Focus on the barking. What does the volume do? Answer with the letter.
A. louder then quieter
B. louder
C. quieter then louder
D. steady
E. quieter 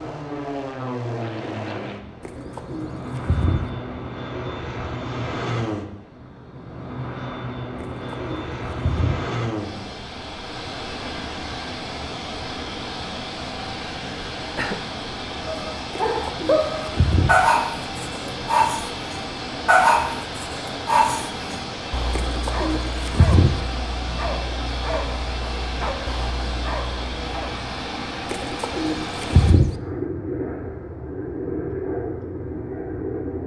E.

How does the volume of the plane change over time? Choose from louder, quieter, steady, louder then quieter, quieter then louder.
steady.